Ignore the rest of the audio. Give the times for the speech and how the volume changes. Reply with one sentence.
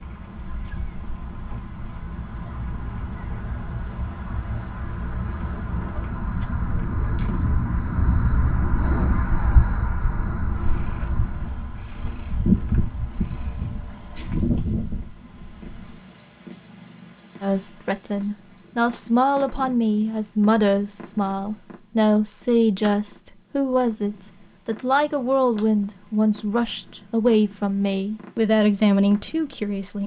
You can hear the speech from 17.4 to 30.0 s, at a steady volume.